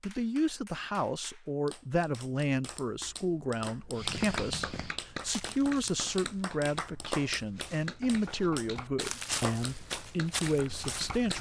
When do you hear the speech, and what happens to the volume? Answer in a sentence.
You can hear the speech from 0.0 to 11.3 s, at a steady volume.